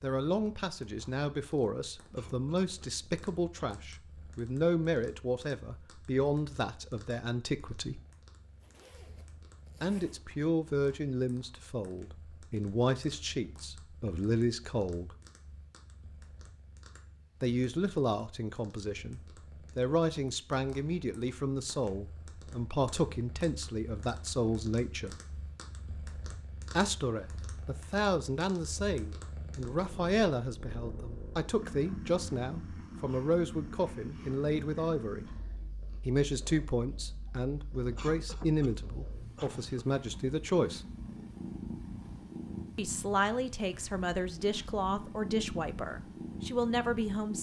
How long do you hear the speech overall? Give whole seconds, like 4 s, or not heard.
39 s.